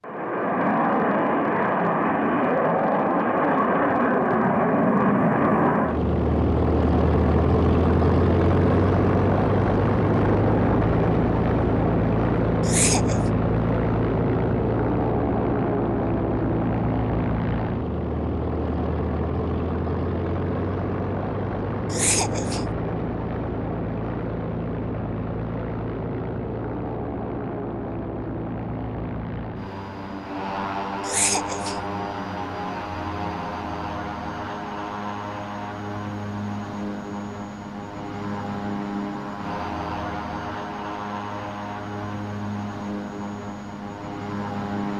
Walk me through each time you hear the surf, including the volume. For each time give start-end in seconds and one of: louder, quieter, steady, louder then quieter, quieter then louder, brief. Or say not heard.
not heard.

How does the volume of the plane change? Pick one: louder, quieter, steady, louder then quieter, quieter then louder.
quieter.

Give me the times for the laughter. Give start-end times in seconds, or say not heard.
12.6-13.2, 21.9-22.8, 31.0-31.9.